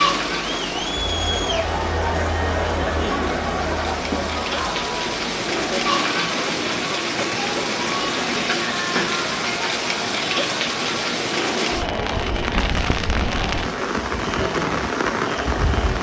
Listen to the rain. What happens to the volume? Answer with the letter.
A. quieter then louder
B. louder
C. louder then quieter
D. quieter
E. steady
B.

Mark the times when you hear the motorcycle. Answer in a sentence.
The motorcycle can't be heard in this clip.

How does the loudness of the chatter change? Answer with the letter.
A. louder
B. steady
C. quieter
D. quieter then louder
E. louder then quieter
C.